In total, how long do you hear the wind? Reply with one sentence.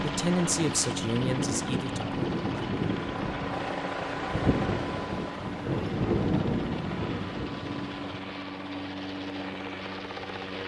The wind can be heard for 8 seconds in total.